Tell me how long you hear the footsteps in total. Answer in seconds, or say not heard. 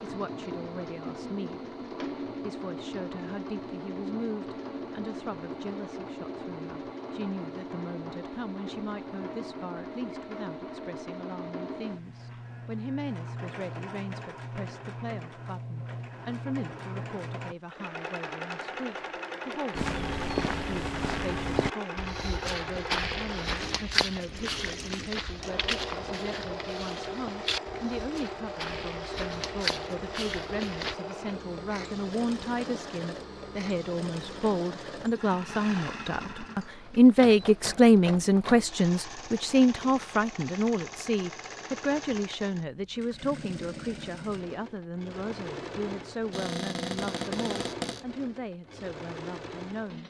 11 s.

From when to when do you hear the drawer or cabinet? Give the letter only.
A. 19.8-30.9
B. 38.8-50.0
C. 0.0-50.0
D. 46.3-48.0
D.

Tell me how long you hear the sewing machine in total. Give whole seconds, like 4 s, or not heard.
50 s.